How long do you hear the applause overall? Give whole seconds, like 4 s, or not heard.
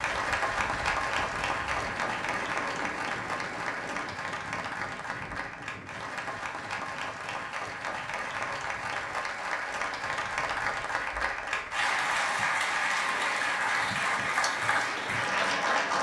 16 s.